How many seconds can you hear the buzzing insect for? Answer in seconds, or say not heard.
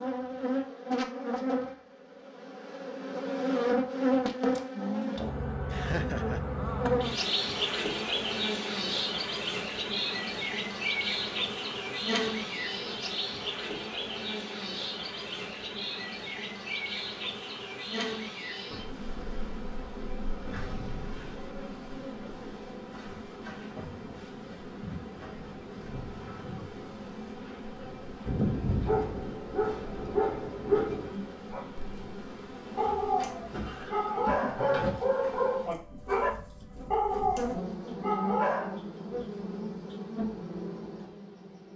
42 s.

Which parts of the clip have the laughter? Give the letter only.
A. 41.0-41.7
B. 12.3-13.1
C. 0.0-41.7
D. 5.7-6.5
D.